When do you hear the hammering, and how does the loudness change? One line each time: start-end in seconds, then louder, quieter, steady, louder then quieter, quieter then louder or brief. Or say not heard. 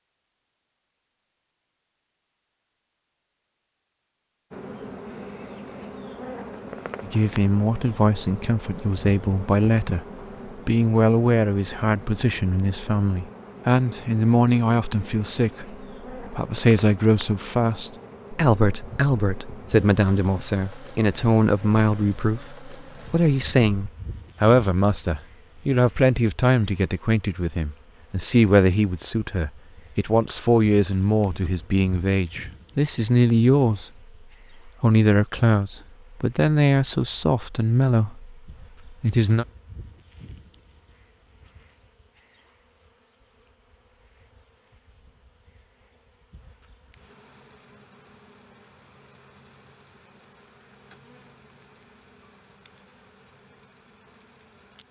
not heard.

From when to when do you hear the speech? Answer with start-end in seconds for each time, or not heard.
7.0-33.9, 34.6-38.4, 39.0-39.5.